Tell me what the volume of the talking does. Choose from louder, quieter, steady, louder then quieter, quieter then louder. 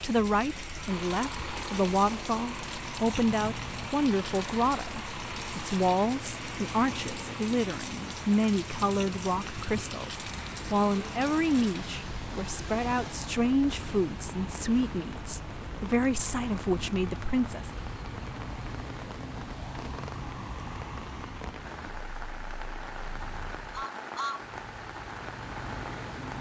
steady.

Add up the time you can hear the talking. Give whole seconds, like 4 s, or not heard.
18 s.